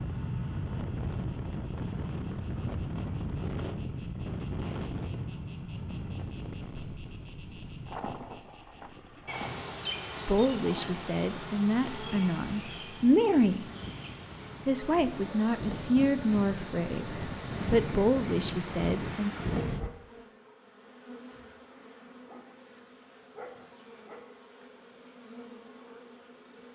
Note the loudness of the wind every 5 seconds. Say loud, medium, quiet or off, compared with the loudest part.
loud, medium, medium, loud, off, off.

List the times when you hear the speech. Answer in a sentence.
You can hear the speech from 10.2 to 13.7 s and from 14.7 to 19.3 s.